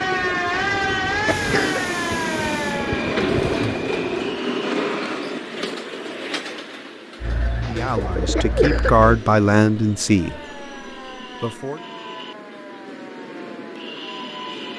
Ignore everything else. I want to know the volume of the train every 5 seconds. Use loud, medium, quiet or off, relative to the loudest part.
loud, medium, medium.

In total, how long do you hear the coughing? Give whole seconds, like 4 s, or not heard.
3 s.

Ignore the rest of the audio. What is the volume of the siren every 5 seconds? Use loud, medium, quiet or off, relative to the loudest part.
loud, off, quiet.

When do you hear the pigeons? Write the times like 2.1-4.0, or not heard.
0.0-4.4, 7.2-9.1.